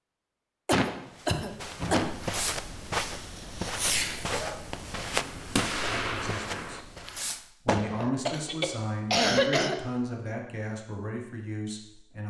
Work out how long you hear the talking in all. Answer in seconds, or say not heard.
6 s.